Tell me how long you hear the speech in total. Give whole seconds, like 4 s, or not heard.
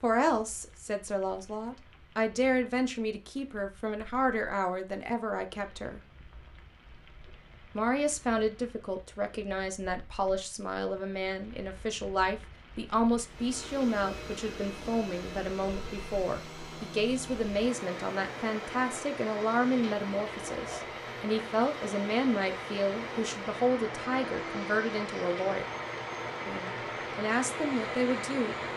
26 s.